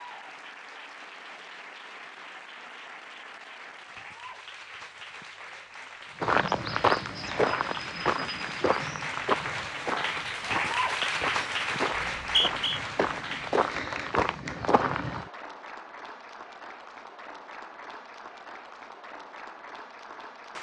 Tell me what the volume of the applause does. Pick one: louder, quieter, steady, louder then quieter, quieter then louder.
louder then quieter.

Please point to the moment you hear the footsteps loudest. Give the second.
7 s.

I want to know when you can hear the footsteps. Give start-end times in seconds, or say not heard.
6.2-15.2.